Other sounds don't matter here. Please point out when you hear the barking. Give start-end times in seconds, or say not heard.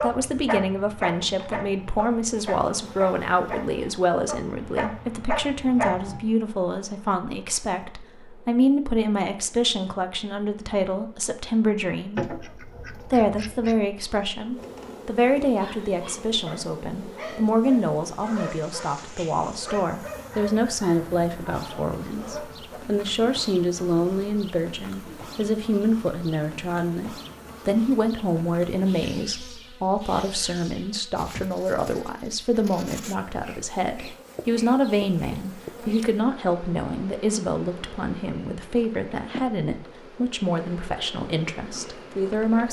0.0-6.2, 15.6-22.8.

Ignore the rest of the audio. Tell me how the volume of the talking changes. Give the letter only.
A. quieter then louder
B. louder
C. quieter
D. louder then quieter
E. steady
E.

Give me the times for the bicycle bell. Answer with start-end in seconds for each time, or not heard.
not heard.